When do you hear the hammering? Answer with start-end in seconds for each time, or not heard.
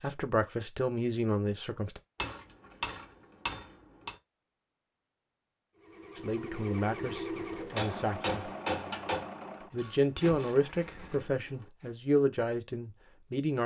2.1-4.2, 7.7-9.3.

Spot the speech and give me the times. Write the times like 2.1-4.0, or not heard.
0.0-2.0, 6.2-8.5, 9.7-13.6.